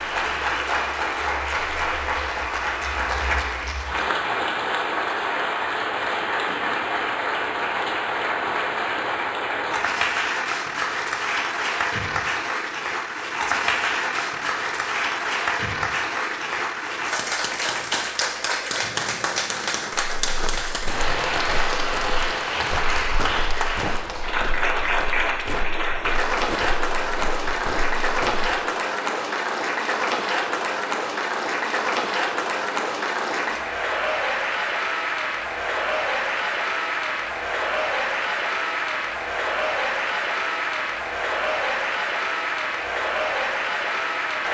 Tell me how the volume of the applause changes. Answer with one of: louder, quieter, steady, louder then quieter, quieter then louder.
steady.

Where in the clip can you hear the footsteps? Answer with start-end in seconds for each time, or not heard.
20.1-28.5.